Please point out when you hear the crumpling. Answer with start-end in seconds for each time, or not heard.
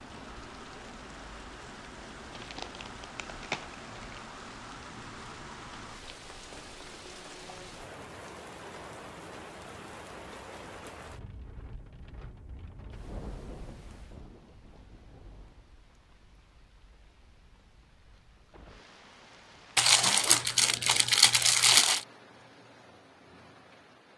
2.3-4.2, 19.8-22.1.